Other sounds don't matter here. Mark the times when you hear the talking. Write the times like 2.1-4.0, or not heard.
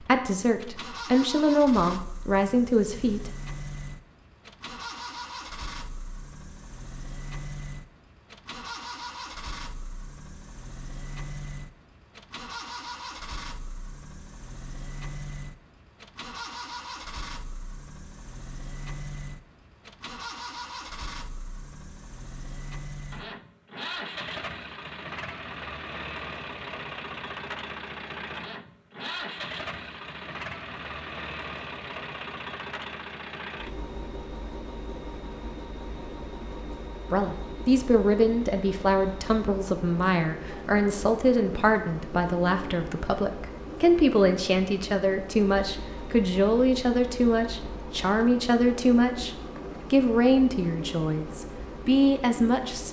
0.0-3.3, 37.1-52.8.